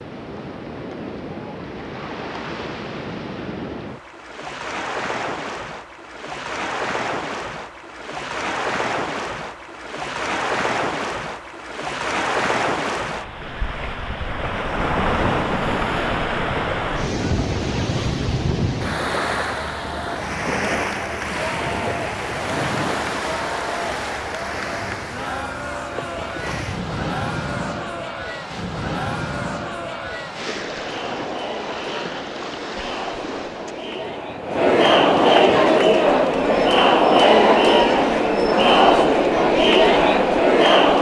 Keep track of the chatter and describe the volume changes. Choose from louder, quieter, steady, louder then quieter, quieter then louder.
louder.